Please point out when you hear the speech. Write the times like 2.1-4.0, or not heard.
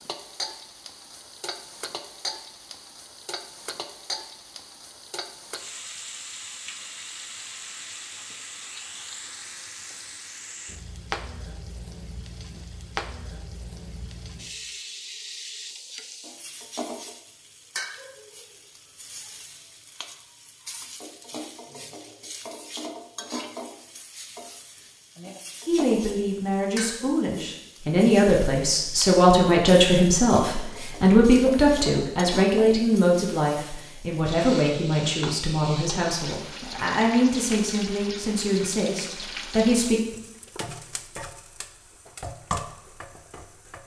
25.6-40.0.